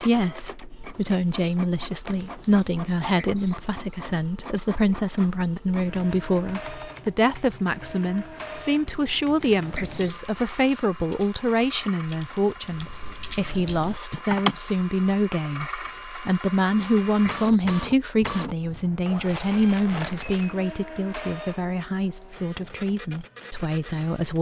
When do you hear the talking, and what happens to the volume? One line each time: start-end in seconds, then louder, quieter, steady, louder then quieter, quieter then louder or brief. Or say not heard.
0.0-24.3 steady.